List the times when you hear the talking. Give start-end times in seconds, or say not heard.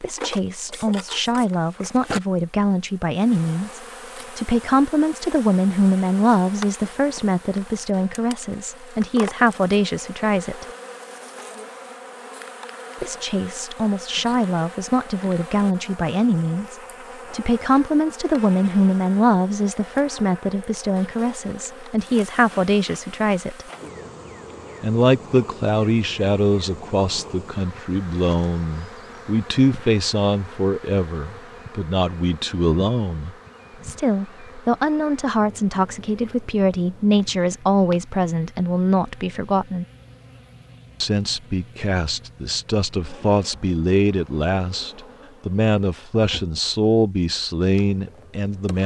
0.0-10.7, 13.0-23.6, 24.8-39.9, 41.0-48.8.